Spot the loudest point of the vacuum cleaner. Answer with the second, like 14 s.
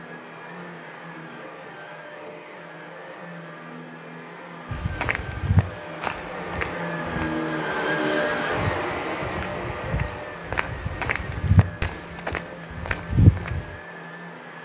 8 s.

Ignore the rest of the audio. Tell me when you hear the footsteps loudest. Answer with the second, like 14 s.
13 s.